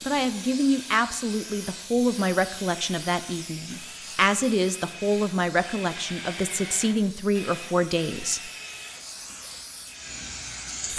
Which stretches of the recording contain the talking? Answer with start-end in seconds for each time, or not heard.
0.0-8.5.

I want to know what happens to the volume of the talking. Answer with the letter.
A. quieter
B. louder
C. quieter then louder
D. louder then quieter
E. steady
E.